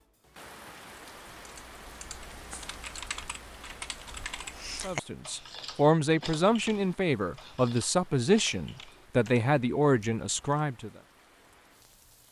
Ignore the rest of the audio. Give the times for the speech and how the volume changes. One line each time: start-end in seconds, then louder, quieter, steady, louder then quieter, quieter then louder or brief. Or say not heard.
4.8-10.9 steady.